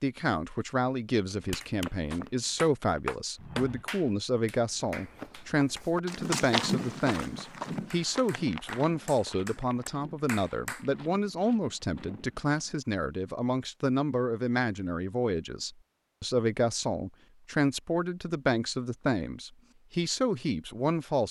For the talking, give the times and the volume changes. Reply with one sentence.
You can hear the talking from 0.0 to 21.2 s, at a steady volume.